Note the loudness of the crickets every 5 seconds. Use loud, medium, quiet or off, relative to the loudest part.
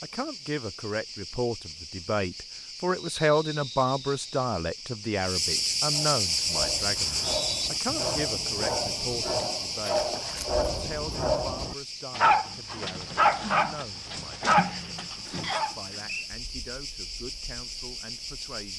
quiet, loud, medium, medium.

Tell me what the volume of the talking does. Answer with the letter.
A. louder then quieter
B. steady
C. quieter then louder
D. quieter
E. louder
D.